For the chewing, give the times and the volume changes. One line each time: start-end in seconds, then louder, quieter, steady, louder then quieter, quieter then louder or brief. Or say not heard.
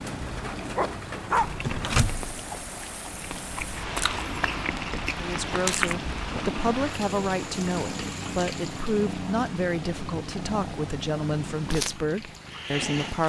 1.4-6.5 quieter then louder.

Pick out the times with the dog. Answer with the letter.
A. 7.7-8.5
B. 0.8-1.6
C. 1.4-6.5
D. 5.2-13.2
B.